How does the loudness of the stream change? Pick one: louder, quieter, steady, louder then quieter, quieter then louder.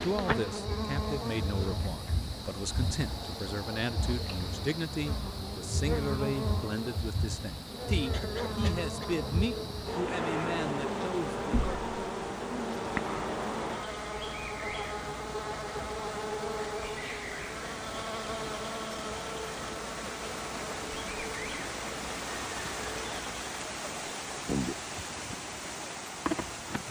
louder.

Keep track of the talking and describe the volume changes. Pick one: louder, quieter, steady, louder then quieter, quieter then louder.
steady.